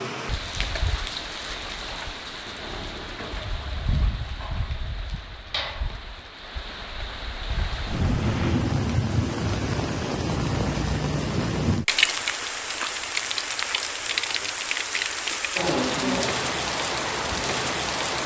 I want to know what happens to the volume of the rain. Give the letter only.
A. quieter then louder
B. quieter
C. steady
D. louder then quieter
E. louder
E.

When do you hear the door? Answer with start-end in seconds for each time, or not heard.
7.9-8.7.